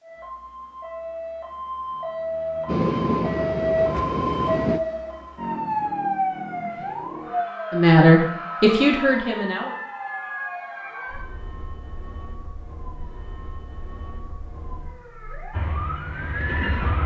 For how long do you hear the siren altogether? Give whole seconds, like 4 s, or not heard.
17 s.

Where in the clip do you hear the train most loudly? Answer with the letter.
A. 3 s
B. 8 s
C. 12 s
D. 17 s
A.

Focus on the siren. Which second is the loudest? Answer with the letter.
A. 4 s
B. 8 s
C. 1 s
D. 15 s
A.